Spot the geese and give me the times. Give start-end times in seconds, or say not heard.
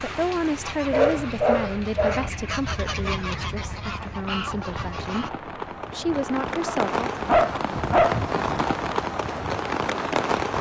0.2-5.3.